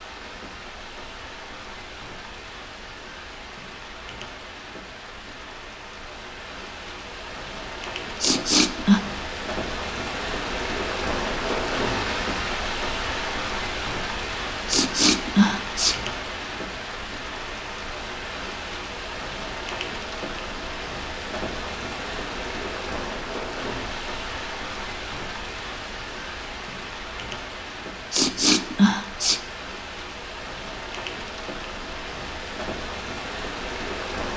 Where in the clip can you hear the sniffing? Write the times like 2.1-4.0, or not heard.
8.2-9.0, 14.7-15.9, 28.1-29.4.